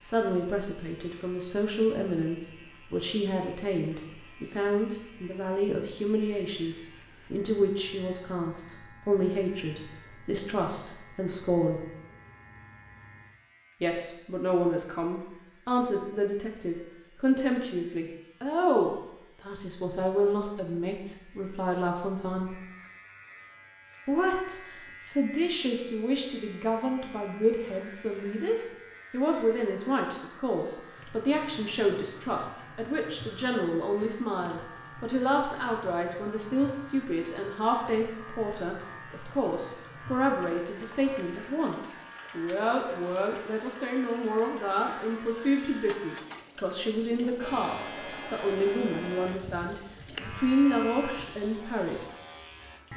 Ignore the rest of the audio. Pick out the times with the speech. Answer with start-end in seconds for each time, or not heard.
0.0-11.8, 13.8-22.6, 24.1-52.0.